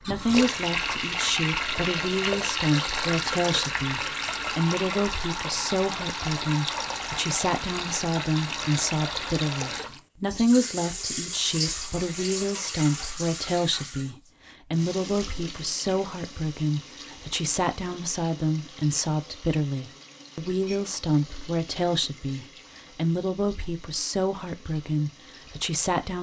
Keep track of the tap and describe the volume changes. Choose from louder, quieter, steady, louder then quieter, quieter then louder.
quieter.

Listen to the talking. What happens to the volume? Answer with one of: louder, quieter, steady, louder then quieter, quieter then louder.
steady.